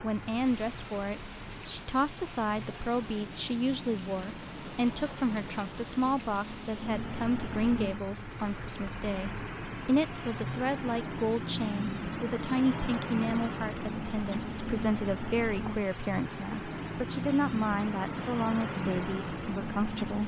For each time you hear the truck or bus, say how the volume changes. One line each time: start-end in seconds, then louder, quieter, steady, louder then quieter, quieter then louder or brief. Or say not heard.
0.0-20.2 louder.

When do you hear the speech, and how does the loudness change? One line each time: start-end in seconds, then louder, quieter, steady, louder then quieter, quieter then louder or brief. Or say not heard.
0.0-20.2 steady.